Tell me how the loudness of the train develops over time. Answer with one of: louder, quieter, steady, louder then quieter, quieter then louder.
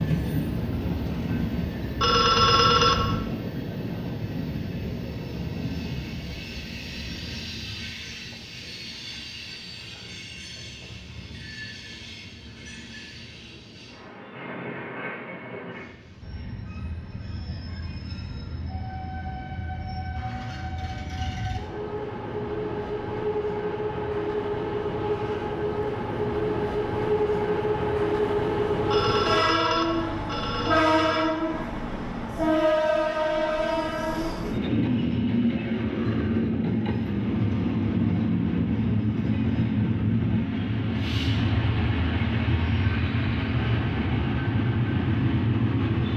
quieter then louder.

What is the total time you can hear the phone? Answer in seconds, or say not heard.
4 s.